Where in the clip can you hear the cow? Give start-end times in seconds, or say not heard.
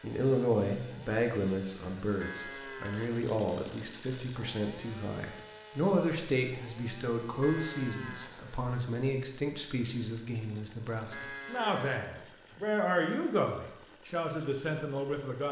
2.2-3.2, 7.4-8.7, 11.1-12.3.